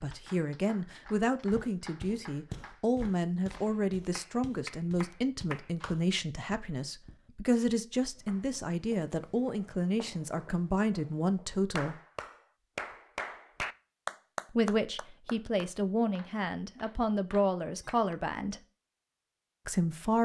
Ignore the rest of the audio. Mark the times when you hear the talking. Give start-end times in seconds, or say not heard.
0.0-12.0, 14.5-18.6, 19.6-20.2.